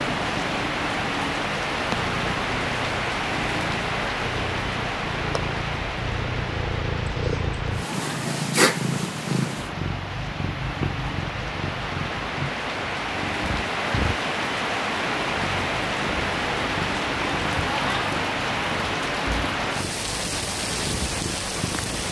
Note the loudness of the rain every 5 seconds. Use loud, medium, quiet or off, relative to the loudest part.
loud, medium, loud, loud, loud.